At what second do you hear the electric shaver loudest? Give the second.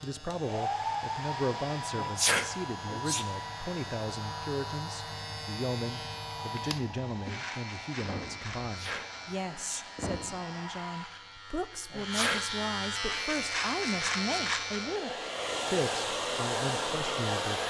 14 s.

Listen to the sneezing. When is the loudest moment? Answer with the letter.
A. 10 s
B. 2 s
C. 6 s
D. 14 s
B.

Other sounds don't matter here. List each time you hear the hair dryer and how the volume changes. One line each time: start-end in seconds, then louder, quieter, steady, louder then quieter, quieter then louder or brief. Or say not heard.
0.0-11.2 quieter
13.1-17.6 louder.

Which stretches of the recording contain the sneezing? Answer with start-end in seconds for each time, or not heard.
1.9-3.2, 8.7-9.8, 11.9-12.4.